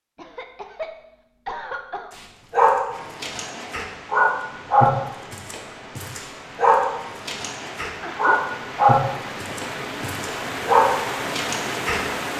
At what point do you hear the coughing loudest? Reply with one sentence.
The loudest moment of the coughing is at 2 seconds.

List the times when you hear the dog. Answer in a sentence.
The dog can be heard from 2.5 to 12.0 s.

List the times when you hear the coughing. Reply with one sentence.
You can hear the coughing from 0.1 to 2.1 s and from 7.8 to 8.4 s.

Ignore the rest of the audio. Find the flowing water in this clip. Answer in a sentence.
The flowing water can be heard from 2.9 to 12.3 s.